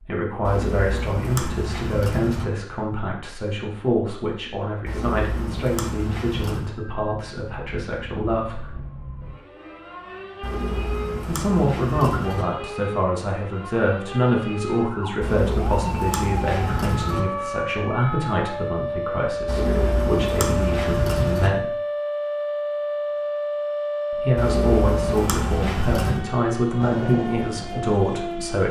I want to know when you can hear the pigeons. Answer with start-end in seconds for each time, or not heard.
0.5-2.5, 4.8-6.7, 10.4-12.4, 15.2-17.2, 19.4-21.5, 24.4-26.2.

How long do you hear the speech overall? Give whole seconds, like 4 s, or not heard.
24 s.